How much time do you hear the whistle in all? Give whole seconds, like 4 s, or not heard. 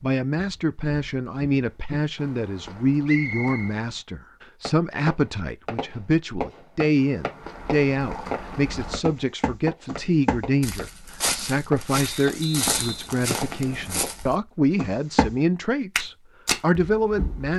3 s.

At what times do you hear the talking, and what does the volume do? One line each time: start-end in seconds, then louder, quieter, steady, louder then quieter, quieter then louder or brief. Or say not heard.
0.0-17.5 steady.